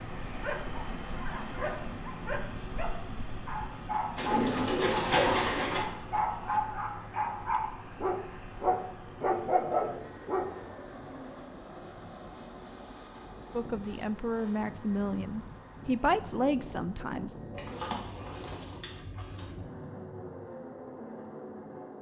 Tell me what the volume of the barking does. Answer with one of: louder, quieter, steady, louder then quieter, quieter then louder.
louder.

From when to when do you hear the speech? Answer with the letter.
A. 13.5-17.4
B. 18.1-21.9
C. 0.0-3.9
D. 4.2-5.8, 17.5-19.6
A.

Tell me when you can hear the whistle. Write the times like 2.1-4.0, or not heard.
not heard.